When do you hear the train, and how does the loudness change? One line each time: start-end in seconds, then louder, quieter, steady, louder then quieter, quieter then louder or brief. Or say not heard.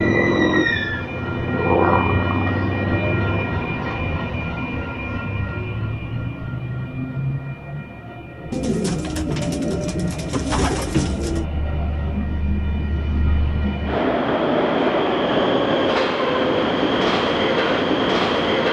0.0-18.6 quieter then louder.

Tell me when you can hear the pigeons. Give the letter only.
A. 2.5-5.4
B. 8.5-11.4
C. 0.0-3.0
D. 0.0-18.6
B.